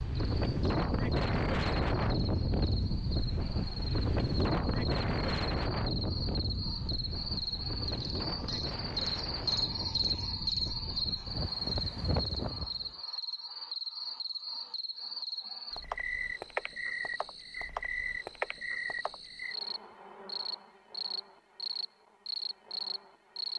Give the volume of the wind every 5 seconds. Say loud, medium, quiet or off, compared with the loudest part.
loud, medium, medium, off, off.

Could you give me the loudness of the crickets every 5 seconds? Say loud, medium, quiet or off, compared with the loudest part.
medium, loud, loud, loud, loud.